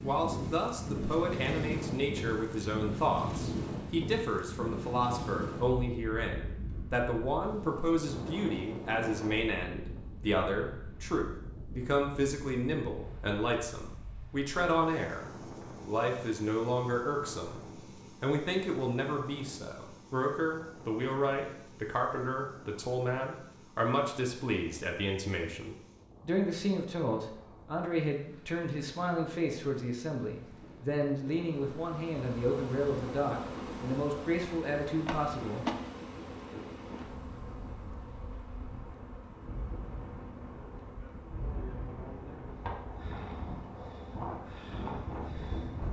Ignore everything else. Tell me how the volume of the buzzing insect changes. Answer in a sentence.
The loudness of the buzzing insect goes down.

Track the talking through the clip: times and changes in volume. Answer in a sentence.
You can hear the talking from 0.0 to 15.2 s, at a steady volume; briefly from 15.8 to 17.6 s; and from 18.2 to 35.6 s, at a steady volume.